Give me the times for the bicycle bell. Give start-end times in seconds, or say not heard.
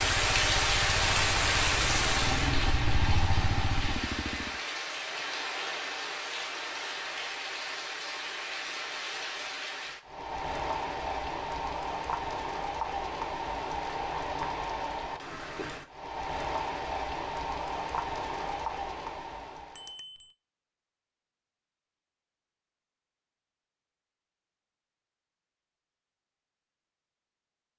19.8-20.3.